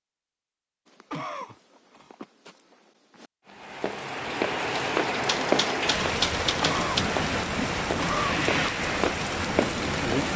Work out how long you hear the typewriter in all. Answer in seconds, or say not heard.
2 s.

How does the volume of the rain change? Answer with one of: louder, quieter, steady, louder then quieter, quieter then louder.
steady.